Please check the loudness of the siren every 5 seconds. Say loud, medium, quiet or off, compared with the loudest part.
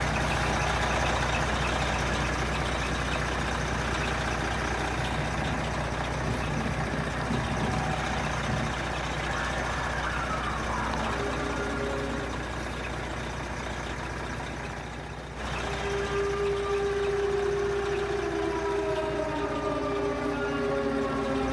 off, medium, medium, loud, loud.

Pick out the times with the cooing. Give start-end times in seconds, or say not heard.
not heard.